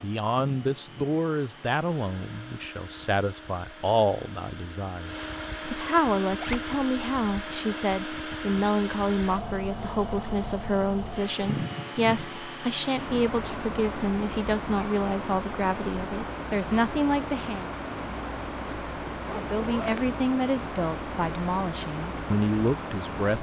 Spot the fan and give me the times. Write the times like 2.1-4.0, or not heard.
0.0-23.3.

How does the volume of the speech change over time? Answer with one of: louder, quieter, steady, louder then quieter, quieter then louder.
steady.